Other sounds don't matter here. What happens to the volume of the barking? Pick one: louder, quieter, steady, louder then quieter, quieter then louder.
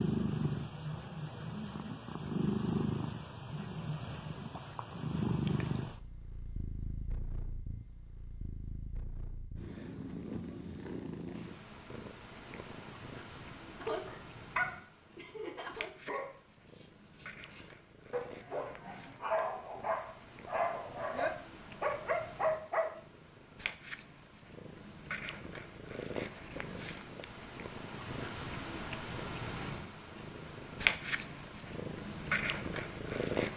quieter then louder.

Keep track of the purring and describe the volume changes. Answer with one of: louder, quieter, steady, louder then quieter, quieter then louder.
quieter then louder.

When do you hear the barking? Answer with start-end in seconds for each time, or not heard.
13.8-22.9.